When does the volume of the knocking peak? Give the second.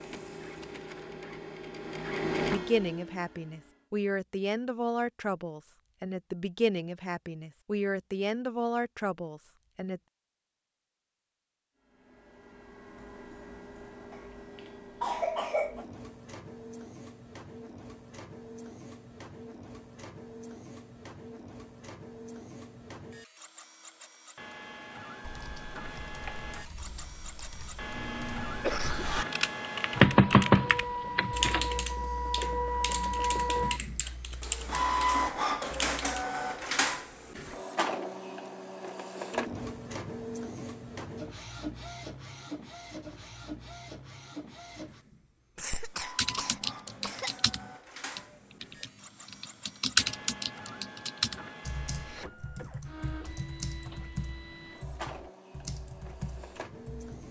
30 s.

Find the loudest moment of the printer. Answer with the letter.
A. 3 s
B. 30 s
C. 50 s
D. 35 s
D.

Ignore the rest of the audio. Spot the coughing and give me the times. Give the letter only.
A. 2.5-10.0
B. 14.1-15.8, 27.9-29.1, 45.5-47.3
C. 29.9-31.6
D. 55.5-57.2
B.